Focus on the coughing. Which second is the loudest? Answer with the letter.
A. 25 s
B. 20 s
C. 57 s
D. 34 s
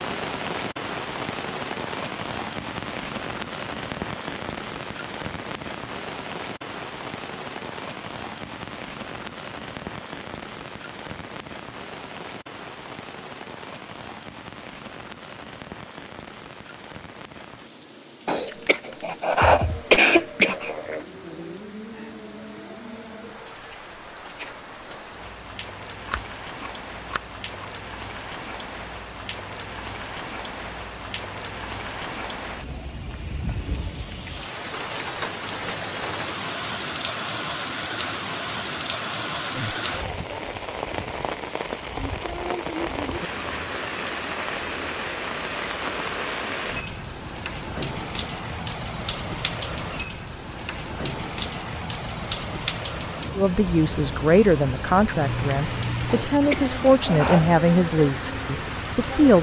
B.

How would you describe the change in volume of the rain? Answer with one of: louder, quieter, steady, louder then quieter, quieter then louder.
quieter then louder.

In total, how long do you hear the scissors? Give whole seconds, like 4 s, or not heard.
3 s.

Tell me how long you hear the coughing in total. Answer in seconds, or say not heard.
4 s.